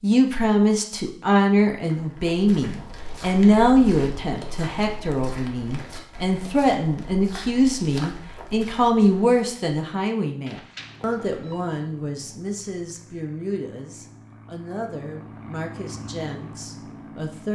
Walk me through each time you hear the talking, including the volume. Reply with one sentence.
You can hear the talking from 0.0 to 17.5 s, getting quieter.